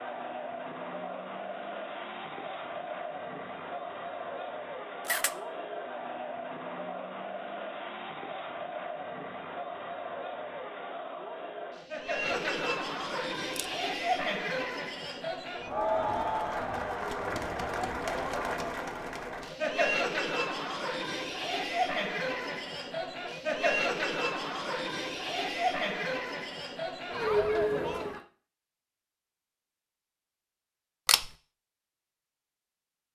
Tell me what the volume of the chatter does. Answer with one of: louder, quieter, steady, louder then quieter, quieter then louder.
louder.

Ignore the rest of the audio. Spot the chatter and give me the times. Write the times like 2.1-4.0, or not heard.
0.0-28.2.